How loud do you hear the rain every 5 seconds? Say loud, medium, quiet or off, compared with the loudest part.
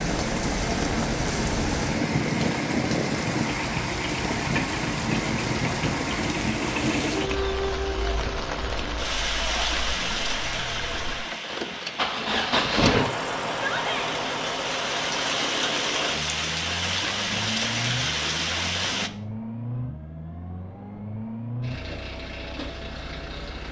loud, loud, medium, loud, off.